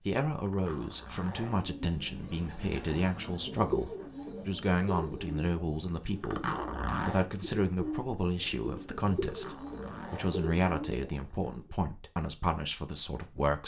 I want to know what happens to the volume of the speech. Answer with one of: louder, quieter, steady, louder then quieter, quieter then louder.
steady.